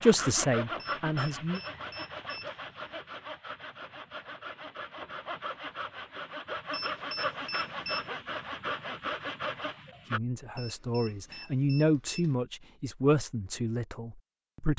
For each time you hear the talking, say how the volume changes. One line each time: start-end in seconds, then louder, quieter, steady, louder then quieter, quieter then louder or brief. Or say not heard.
0.0-1.6 brief
10.1-14.7 louder then quieter.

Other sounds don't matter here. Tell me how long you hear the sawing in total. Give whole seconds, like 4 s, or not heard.
10 s.